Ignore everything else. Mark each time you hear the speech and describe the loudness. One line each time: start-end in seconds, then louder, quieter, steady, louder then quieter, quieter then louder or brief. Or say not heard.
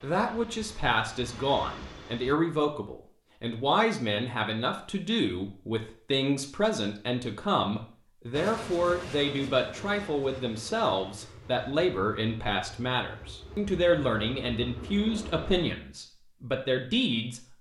0.0-17.5 steady.